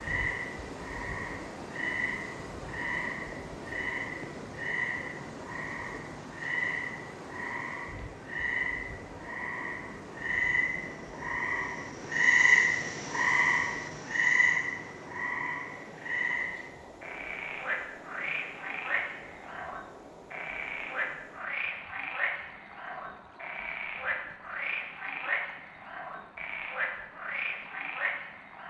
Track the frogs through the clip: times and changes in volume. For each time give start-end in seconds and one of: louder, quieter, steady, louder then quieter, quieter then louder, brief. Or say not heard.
0.0-28.6 louder then quieter.